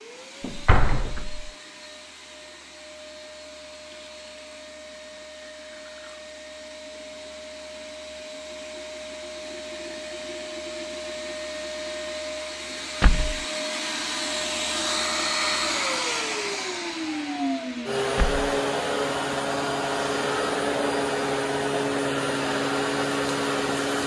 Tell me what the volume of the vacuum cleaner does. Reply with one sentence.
The volume of the vacuum cleaner goes up.